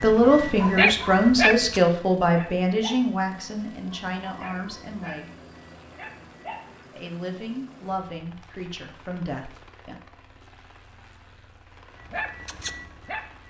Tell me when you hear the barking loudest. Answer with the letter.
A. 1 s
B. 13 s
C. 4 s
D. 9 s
A.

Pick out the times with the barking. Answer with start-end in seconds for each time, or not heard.
0.0-6.8, 11.9-13.4.